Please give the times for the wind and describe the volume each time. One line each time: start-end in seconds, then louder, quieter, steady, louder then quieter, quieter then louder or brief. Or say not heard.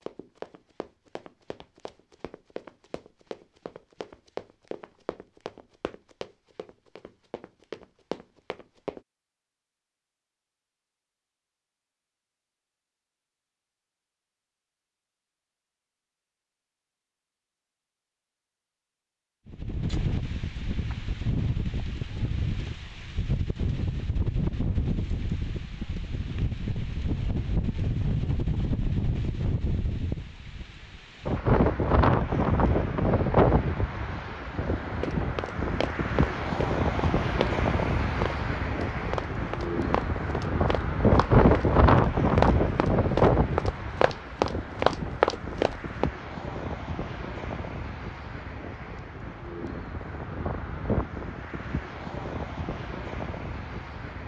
19.4-54.2 louder then quieter.